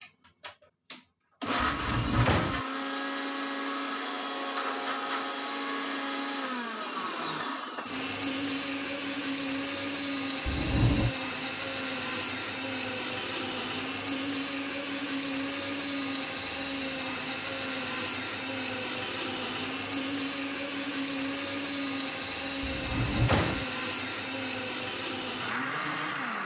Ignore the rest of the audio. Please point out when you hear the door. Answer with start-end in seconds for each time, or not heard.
1.6-2.6, 10.4-11.2, 22.6-23.6.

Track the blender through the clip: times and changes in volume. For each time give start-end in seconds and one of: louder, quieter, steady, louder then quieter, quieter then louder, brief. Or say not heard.
0.0-26.4 steady.